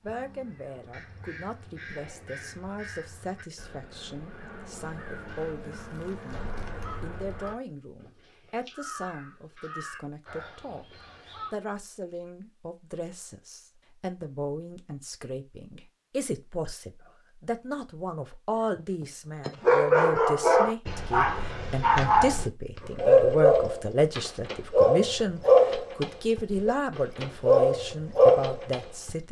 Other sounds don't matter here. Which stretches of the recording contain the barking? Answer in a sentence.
You can hear the barking from 19.0 to 29.1 s.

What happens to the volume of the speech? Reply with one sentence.
The volume of the speech goes up.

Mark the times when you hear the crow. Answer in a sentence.
You can hear the crow from 0.0 to 11.6 s.